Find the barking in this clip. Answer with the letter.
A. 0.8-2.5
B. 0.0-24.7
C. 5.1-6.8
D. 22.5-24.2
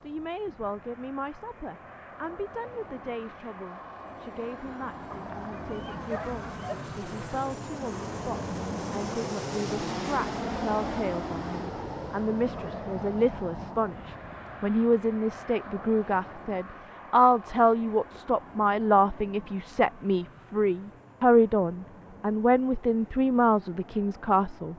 C.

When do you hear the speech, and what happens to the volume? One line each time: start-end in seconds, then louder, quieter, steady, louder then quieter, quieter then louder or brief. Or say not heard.
0.0-24.7 louder.